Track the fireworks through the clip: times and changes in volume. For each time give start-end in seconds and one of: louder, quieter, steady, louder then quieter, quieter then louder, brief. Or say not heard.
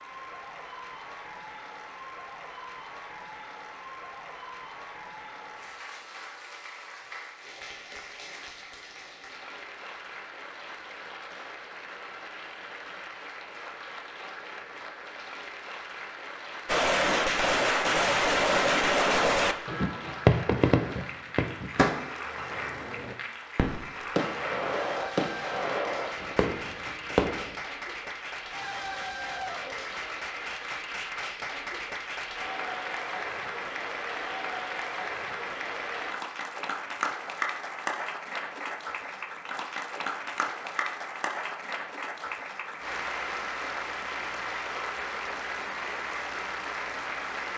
16.6-27.6 quieter.